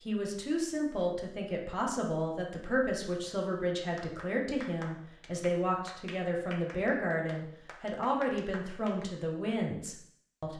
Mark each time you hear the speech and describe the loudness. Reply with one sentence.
You can hear the speech from 0.1 to 10.5 s, at a steady volume.